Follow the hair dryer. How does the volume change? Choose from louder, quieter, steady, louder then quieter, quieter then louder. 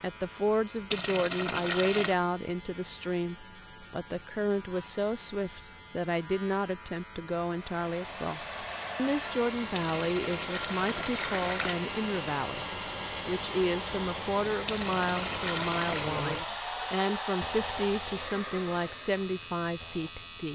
steady.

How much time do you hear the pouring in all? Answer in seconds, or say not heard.
5 s.